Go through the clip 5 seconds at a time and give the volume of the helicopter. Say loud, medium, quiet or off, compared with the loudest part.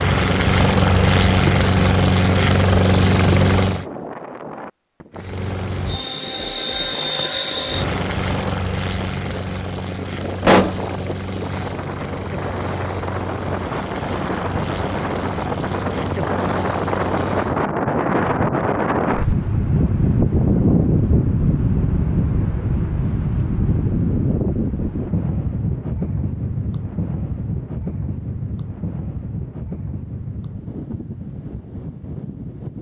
loud, medium, quiet, quiet, off, off, off.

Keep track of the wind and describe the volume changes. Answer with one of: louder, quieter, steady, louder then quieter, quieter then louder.
louder then quieter.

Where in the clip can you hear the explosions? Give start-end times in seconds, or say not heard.
10.4-10.8.